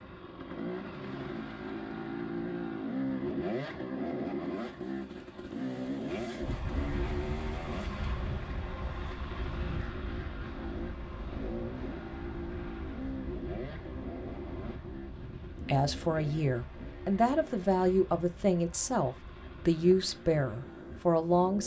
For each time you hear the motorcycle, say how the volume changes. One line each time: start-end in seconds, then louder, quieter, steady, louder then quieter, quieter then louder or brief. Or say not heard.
0.0-21.6 quieter.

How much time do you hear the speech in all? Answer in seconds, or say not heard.
6 s.